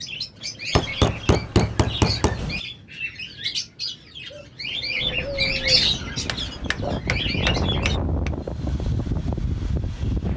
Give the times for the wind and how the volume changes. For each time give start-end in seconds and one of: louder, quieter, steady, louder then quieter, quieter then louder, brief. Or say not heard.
5.0-10.3 louder.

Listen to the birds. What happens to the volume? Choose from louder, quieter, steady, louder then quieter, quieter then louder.
louder then quieter.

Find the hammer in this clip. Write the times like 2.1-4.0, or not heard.
0.8-2.6, 6.2-8.3.